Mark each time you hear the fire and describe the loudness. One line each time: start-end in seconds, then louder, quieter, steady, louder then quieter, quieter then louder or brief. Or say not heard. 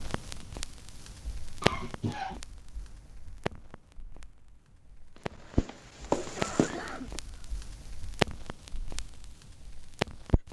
0.0-10.4 quieter then louder.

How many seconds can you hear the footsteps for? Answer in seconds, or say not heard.
2 s.